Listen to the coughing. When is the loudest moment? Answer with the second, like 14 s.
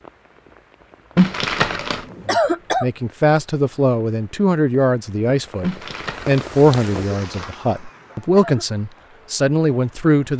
2 s.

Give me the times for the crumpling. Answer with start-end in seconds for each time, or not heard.
1.1-2.0, 5.6-7.5.